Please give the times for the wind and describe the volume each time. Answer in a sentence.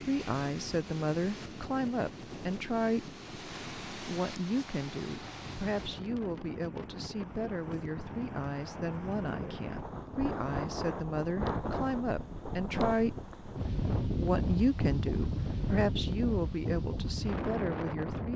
The wind can be heard from 0.0 to 18.3 s, getting louder.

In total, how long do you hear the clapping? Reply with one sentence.
The clapping can't be heard in this clip.